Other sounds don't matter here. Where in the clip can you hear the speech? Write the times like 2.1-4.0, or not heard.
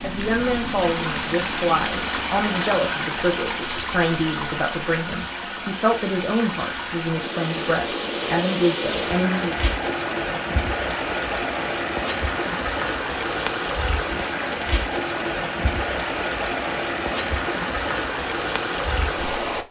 0.0-9.6.